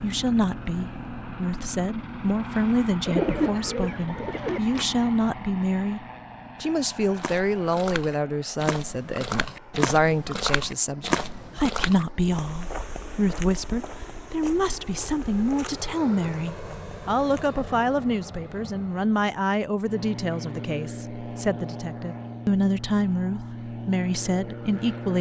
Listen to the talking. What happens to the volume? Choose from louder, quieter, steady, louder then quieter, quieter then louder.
steady.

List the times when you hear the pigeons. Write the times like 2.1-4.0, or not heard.
3.0-4.8.